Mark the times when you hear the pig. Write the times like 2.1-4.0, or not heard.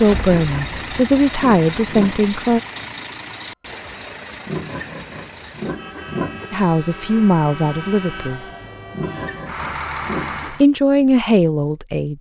0.2-2.3, 4.5-6.5, 8.9-10.6.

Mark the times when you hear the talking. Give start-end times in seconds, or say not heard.
0.0-2.6, 6.5-8.4, 10.5-12.1.